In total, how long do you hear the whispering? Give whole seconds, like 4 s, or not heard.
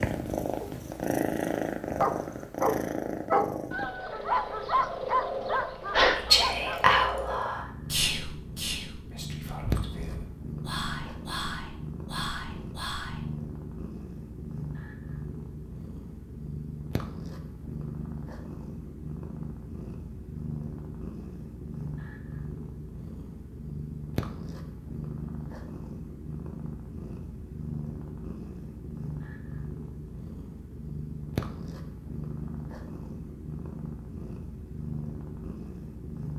7 s.